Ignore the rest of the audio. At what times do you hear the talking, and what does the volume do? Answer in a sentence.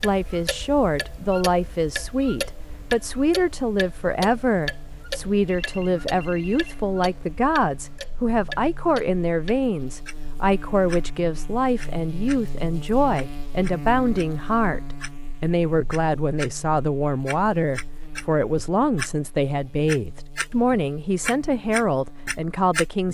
The talking can be heard from 0.0 to 23.0 s, at a steady volume.